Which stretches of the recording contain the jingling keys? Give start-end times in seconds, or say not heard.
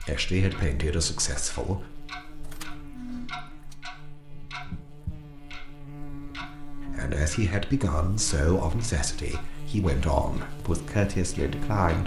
2.4-3.8.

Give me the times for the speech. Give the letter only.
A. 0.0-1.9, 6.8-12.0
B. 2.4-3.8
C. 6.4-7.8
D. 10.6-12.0
A.